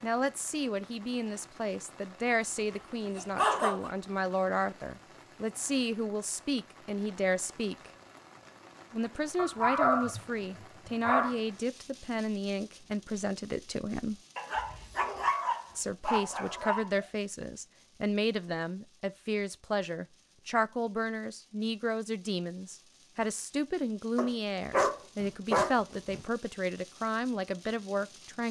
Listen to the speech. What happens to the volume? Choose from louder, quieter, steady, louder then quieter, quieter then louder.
steady.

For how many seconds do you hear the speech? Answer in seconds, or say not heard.
26 s.